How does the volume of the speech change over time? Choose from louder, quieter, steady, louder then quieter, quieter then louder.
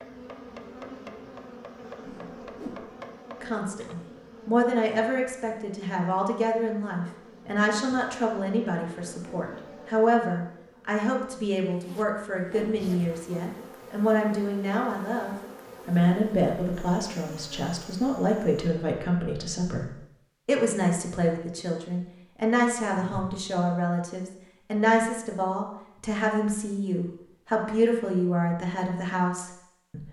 steady.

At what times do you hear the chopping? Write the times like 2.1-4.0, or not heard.
0.0-4.0.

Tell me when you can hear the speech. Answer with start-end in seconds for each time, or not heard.
3.4-30.0.